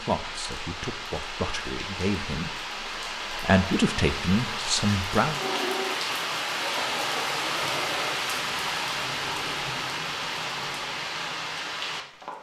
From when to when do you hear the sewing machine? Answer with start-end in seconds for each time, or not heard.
5.3-8.2.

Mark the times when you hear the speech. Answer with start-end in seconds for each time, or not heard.
0.0-5.4.